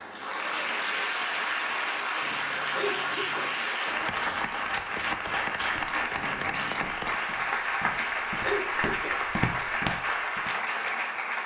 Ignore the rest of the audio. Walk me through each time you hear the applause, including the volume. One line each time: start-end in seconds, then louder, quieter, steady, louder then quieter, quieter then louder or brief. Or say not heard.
0.0-11.4 steady.